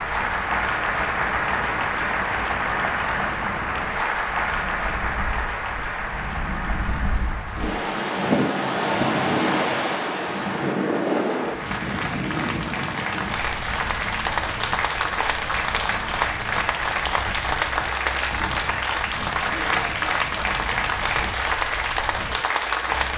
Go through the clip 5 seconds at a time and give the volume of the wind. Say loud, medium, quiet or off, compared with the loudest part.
quiet, loud, loud, quiet, quiet.